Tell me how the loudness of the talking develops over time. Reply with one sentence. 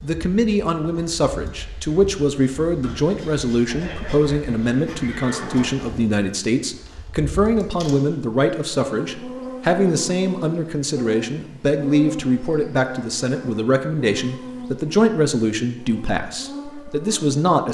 The volume of the talking stays about the same.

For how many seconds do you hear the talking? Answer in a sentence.
The talking can be heard for 18 seconds in total.